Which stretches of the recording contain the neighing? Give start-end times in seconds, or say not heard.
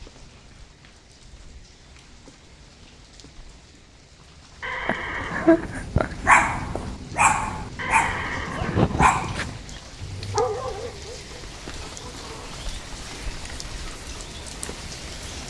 4.6-5.8, 7.8-9.8.